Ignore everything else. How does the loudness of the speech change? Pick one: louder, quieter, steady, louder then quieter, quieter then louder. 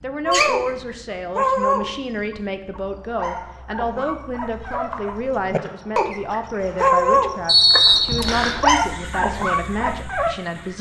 steady.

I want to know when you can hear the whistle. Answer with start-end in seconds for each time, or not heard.
7.5-8.6.